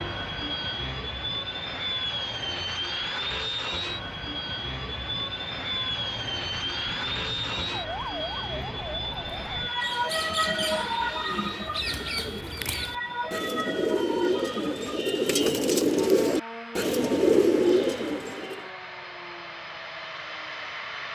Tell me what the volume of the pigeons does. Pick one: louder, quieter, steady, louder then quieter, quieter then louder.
louder.